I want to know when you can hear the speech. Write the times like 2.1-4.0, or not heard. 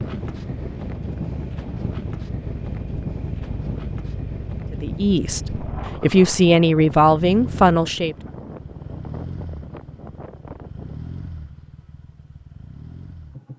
4.7-8.2.